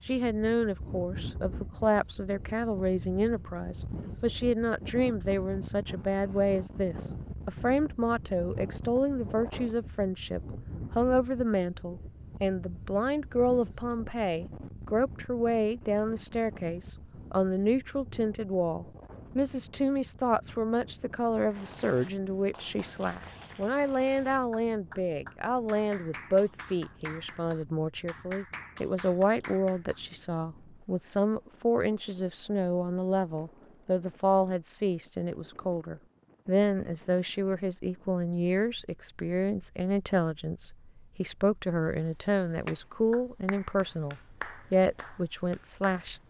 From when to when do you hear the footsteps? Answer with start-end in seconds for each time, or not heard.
not heard.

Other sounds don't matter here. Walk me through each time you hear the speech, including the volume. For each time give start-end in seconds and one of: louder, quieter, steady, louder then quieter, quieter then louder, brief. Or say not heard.
0.0-46.2 steady.